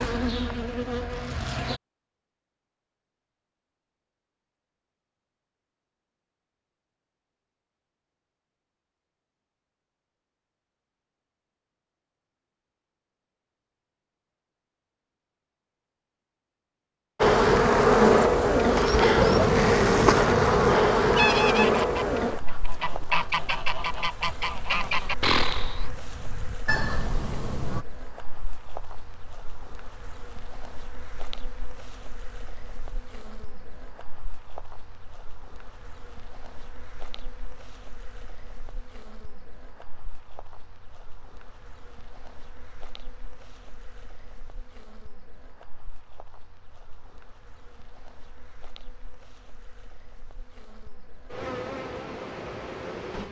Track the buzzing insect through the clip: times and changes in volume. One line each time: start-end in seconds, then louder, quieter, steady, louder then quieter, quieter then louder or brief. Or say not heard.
0.0-1.8 brief
17.2-53.2 quieter then louder.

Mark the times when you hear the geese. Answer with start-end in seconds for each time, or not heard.
19.1-27.9.